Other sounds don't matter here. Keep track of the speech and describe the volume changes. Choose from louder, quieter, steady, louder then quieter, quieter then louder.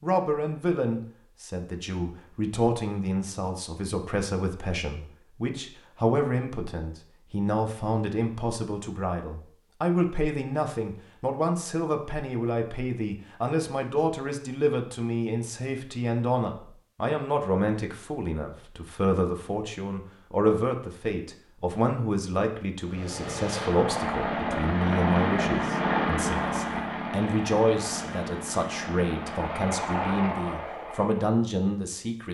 steady.